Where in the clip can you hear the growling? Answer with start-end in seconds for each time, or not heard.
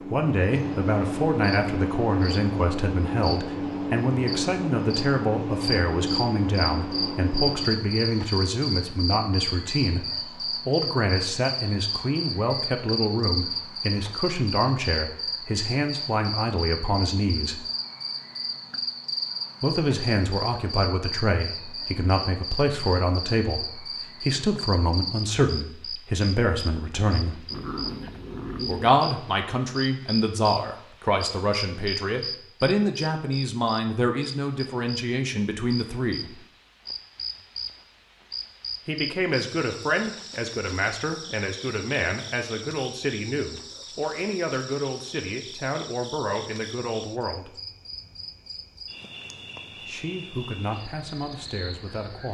27.5-28.9.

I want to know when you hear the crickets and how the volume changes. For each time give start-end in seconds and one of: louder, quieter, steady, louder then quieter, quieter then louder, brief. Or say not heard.
0.0-52.2 quieter.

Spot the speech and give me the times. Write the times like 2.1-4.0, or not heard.
0.1-17.6, 19.6-27.4, 28.6-36.4, 38.9-47.5, 49.9-52.2.